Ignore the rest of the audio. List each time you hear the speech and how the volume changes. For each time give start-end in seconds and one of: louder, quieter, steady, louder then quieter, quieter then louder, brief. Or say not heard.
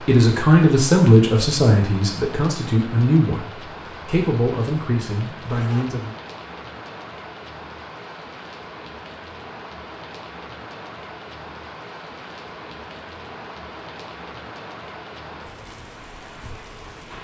0.1-6.2 quieter.